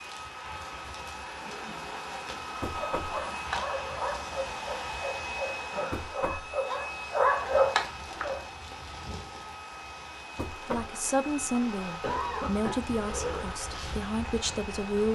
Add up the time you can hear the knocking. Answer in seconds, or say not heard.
2 s.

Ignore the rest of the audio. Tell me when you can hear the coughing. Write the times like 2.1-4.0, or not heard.
1.4-1.8, 5.7-6.1, 12.0-13.5.